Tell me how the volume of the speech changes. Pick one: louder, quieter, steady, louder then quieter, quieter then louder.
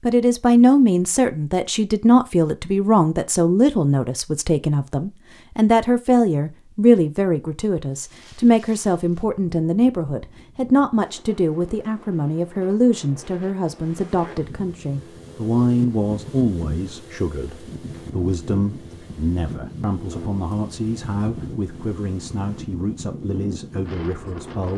quieter.